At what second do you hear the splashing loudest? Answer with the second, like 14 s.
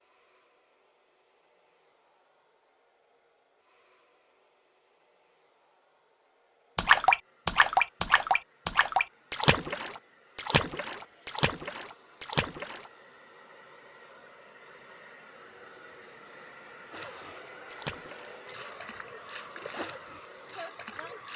7 s.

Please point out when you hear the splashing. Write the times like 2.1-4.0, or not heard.
6.8-12.9, 16.9-21.3.